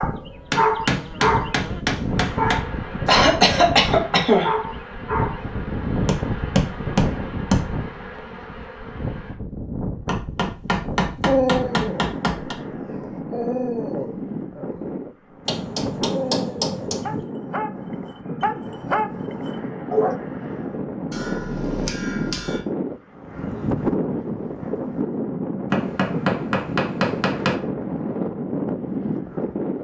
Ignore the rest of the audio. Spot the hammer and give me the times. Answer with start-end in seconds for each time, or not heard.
0.5-2.6, 6.0-7.7, 10.1-12.6, 15.4-17.2, 21.1-22.6, 25.7-27.6.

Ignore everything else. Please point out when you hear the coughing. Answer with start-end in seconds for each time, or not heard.
3.0-4.5.